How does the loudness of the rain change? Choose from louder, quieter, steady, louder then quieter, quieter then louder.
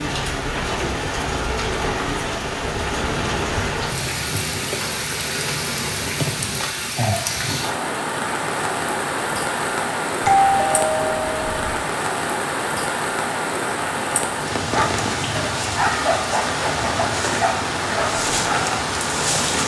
steady.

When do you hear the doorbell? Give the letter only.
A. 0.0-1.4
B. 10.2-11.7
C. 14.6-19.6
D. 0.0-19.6
B.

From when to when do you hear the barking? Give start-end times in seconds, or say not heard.
14.6-19.6.